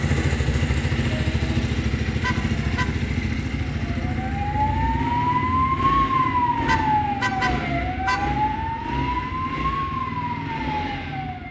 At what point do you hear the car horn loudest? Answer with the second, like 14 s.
7 s.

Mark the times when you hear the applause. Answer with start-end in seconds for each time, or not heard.
not heard.